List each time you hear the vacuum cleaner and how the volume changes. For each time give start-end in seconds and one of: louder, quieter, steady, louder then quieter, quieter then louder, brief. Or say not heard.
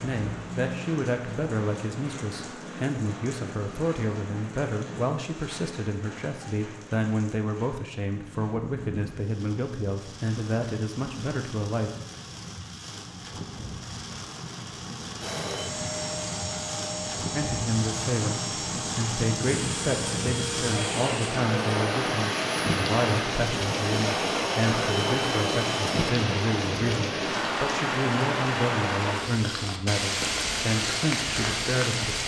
15.2-26.1 steady.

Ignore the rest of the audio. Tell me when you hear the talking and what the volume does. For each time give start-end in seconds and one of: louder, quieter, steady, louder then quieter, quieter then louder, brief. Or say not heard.
0.0-11.9 steady
17.4-32.2 steady.